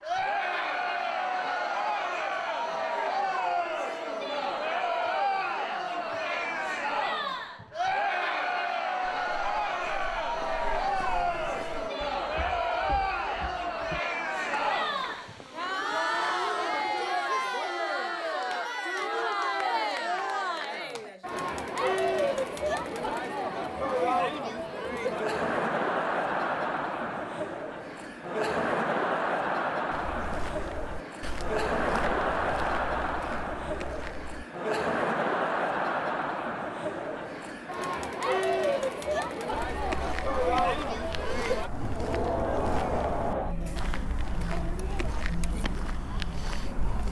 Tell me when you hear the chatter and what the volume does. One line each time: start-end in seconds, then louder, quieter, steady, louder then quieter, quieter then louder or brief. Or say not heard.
0.0-47.0 steady.